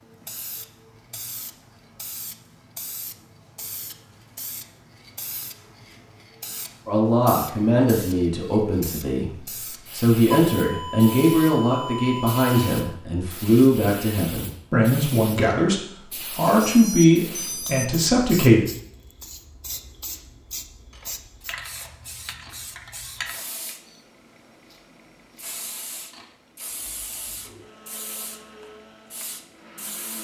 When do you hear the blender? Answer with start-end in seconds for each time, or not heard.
27.4-30.2.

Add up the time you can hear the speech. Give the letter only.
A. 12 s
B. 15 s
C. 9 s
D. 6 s
A.